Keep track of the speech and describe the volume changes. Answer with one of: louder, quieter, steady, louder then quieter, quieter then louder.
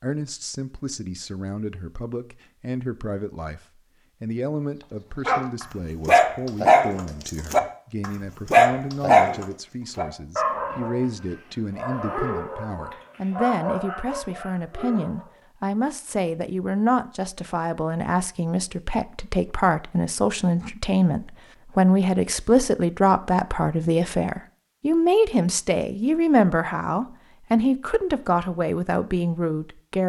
louder.